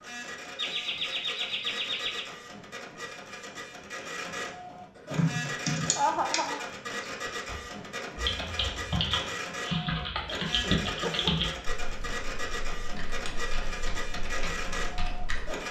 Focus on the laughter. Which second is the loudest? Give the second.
6 s.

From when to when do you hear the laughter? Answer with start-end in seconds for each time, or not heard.
0.6-2.2, 6.0-6.7, 10.7-11.5.